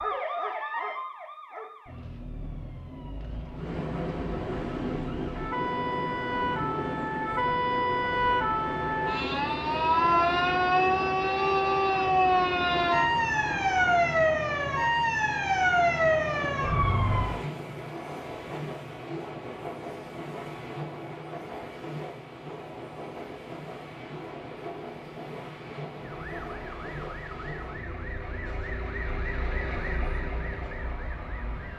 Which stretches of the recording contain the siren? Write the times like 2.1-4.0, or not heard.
0.0-17.4, 26.0-31.7.